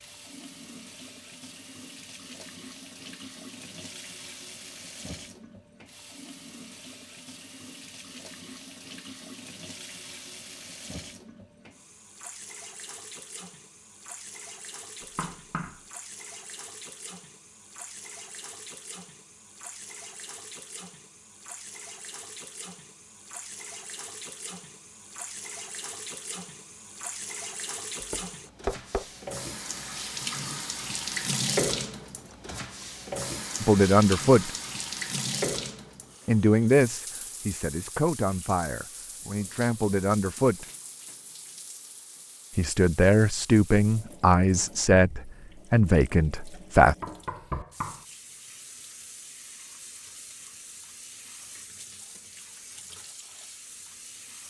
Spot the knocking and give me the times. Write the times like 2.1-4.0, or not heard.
15.2-15.8, 28.0-29.1, 47.0-48.0.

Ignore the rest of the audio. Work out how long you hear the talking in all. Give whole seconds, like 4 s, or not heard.
10 s.